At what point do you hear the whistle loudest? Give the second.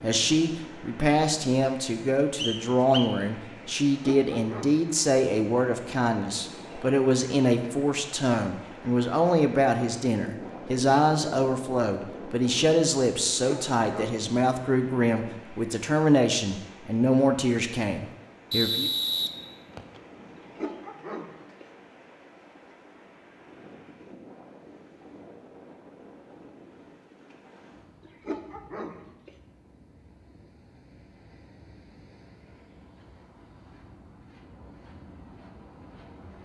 19 s.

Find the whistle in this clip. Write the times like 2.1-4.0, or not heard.
2.4-3.1, 18.5-20.0.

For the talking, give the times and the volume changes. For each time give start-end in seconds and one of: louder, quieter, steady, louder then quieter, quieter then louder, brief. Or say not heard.
0.0-18.9 steady.